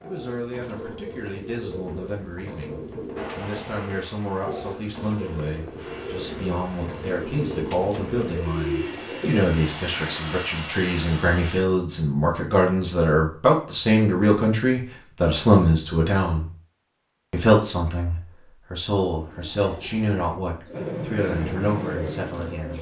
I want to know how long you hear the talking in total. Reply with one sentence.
You can hear the talking for 22 seconds altogether.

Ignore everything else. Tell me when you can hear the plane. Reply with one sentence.
The plane can be heard from 3.1 to 11.7 s and from 20.7 to 22.7 s.